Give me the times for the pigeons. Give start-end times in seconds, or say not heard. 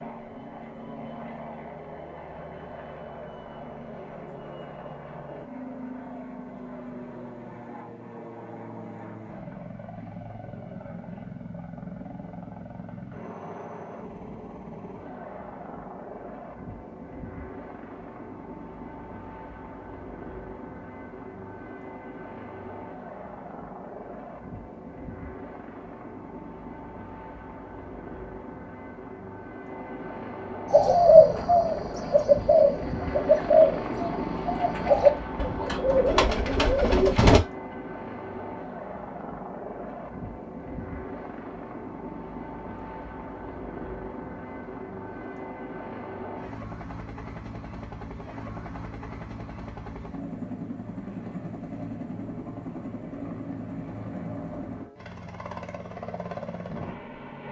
30.7-37.4.